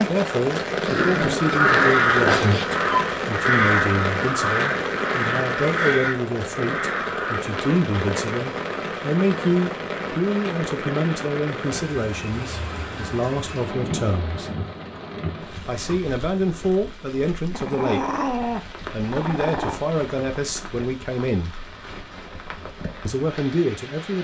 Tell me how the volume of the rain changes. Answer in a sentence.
The volume of the rain goes down.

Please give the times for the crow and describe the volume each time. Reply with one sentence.
You can hear the crow from 0.9 to 7.5 s, getting quieter.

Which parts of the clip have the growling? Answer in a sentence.
You can hear the growling from 0.8 to 2.6 s and from 17.5 to 19.8 s.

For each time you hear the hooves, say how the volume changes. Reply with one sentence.
The hooves can't be heard in this clip.